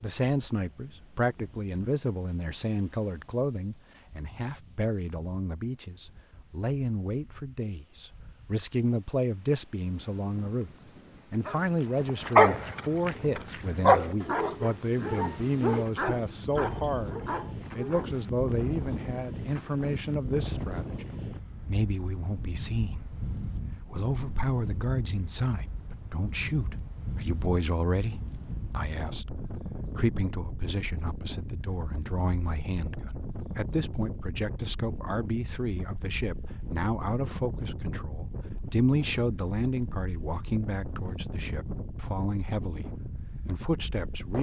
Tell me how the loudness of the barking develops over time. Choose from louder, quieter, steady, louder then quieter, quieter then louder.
quieter.